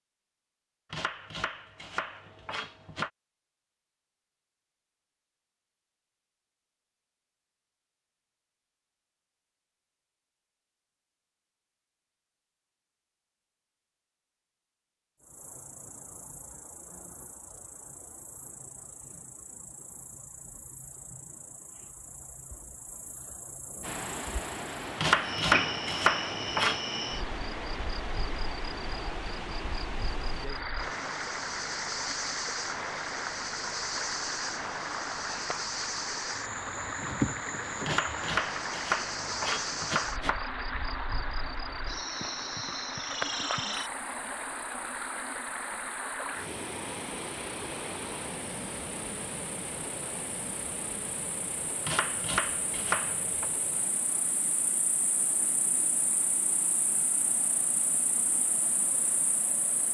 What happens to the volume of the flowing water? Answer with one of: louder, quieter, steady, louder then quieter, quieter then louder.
quieter.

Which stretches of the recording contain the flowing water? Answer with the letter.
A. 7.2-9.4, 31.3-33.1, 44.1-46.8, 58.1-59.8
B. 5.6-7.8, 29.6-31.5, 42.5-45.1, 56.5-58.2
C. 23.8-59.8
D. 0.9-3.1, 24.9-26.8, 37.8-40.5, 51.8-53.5
C.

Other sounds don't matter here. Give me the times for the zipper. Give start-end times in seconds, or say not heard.
not heard.